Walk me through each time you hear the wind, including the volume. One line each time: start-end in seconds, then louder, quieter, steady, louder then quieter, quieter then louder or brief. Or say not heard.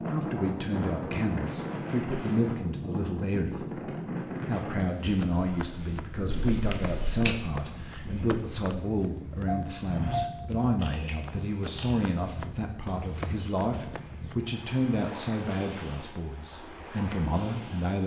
0.0-18.0 quieter.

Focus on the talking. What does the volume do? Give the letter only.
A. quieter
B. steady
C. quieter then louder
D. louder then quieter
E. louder
B.